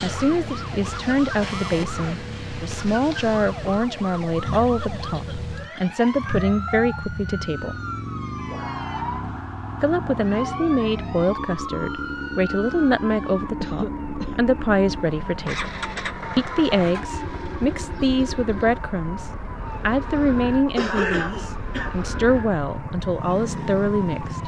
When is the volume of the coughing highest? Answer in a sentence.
The loudest moment of the coughing is at 21 seconds.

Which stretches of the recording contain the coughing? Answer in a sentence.
You can hear the coughing from 4.4 to 6.0 s, from 13.6 to 14.3 s and from 20.8 to 21.9 s.